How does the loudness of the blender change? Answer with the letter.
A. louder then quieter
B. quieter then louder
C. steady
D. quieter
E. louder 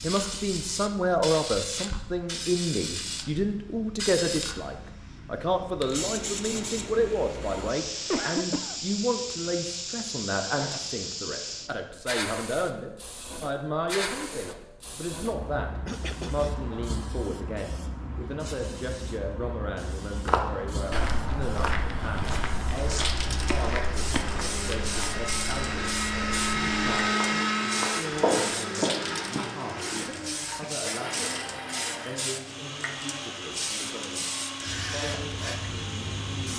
A.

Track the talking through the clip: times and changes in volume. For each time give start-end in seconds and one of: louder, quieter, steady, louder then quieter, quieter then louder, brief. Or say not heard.
0.0-36.5 quieter.